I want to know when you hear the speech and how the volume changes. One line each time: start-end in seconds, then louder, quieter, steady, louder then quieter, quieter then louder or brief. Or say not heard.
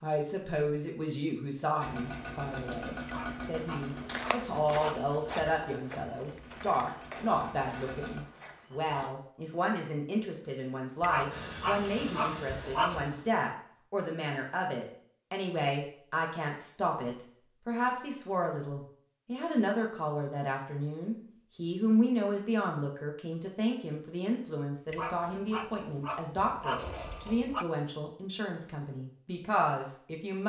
0.0-30.4 steady.